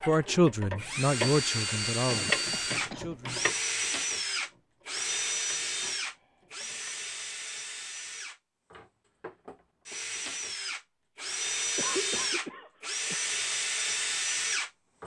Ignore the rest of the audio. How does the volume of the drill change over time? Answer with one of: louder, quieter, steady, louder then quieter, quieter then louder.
quieter then louder.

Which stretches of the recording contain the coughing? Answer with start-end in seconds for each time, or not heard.
2.0-3.2, 11.8-13.2.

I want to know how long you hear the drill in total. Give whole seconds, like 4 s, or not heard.
15 s.